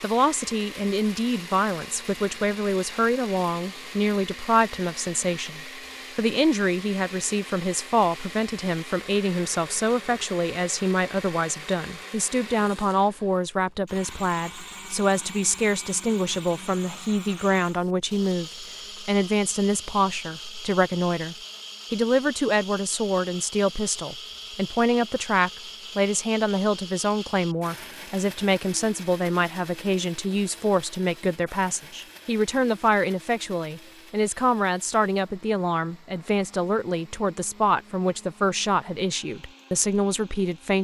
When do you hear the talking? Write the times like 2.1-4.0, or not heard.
0.0-40.7.